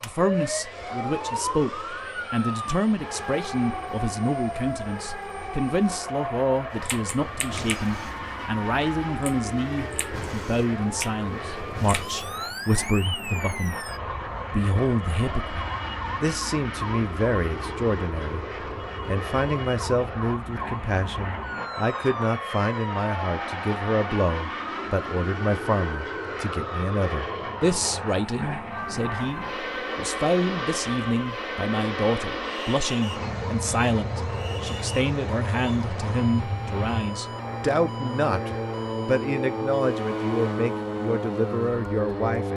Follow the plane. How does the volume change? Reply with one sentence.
The loudness of the plane goes up.